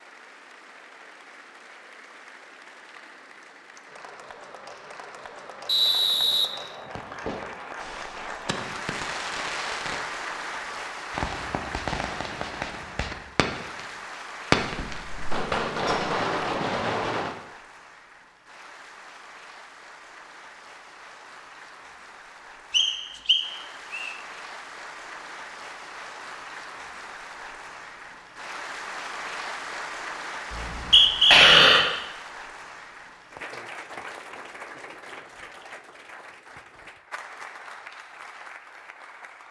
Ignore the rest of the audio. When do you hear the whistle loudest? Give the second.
31 s.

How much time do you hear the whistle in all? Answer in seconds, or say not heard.
4 s.